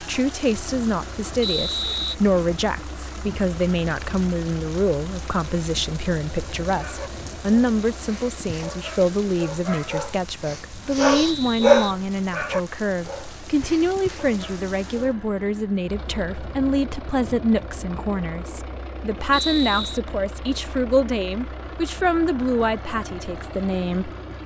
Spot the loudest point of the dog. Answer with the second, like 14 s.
12 s.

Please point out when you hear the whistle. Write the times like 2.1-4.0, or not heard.
1.4-2.1, 11.2-12.7, 19.3-20.0.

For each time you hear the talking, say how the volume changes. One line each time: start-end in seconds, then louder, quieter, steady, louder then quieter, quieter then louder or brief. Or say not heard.
0.0-24.1 steady.